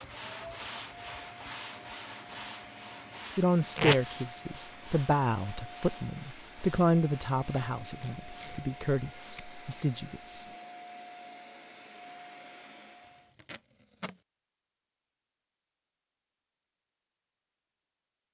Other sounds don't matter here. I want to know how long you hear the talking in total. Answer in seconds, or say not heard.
7 s.